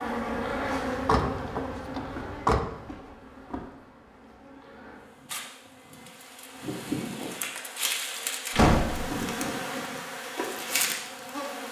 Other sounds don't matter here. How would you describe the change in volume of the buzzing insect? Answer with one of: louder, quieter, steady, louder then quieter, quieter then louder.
quieter then louder.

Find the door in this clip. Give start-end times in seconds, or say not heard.
1.1-2.6, 8.6-9.2.